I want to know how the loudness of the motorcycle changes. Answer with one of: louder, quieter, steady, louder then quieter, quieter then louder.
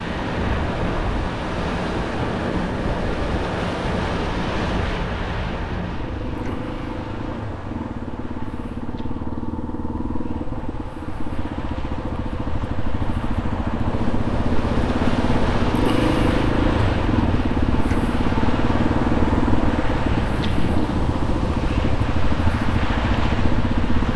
louder.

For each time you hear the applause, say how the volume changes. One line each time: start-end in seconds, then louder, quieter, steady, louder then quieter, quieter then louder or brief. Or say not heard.
not heard.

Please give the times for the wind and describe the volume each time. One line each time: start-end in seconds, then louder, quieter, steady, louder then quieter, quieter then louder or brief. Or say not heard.
0.0-24.1 quieter then louder.